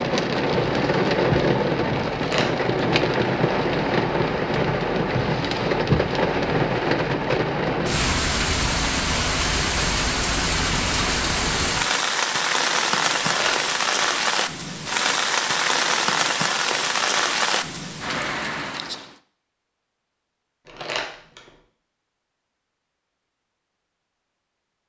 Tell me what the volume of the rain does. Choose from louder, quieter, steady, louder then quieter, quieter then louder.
steady.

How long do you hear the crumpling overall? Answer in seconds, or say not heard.
2 s.